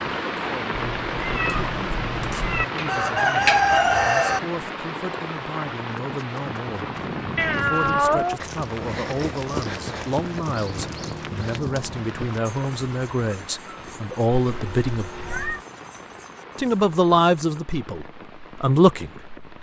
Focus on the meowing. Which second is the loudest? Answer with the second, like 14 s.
8 s.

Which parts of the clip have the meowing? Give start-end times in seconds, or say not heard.
0.7-2.6, 7.3-8.4, 14.3-15.7.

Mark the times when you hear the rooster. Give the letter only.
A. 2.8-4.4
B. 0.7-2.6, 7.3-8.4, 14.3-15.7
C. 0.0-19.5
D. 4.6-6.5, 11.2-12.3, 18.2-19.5
A.